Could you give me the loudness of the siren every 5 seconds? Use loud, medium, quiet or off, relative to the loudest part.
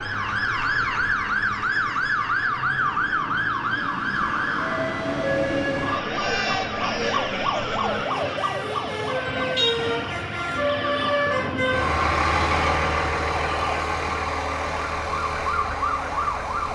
loud, loud, medium, loud.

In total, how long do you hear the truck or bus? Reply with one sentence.
The truck or bus can be heard for 17 seconds in total.